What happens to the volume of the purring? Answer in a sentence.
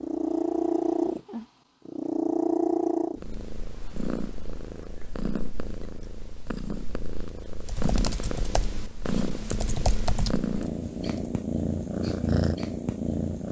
The loudness of the purring goes down, then up.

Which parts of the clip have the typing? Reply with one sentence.
You can hear the typing from 7.6 to 11.2 s.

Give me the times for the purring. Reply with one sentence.
You can hear the purring from 0.0 to 13.4 s.